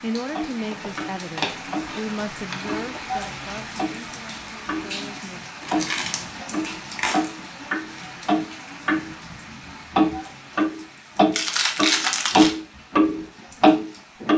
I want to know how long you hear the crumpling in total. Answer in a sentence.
The crumpling can be heard for 5 seconds in total.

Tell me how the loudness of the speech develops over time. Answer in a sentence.
The volume of the speech goes down.